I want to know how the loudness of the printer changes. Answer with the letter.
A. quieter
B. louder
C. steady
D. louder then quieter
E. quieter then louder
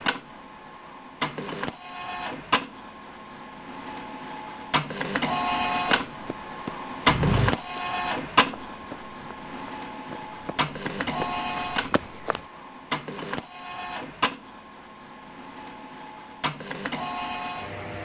D.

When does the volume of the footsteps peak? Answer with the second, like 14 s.
7 s.